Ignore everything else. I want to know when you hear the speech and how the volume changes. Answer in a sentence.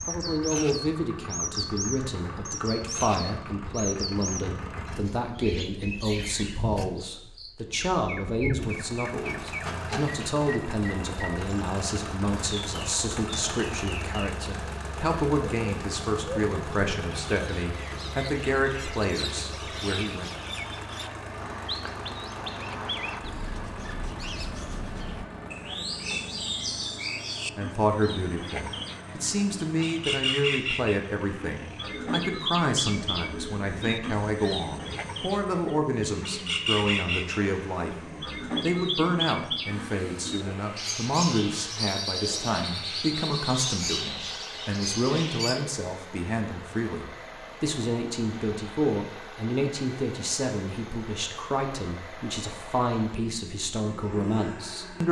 The speech can be heard from 0.1 to 20.3 s, at a steady volume; and from 27.6 to 55.0 s, at a steady volume.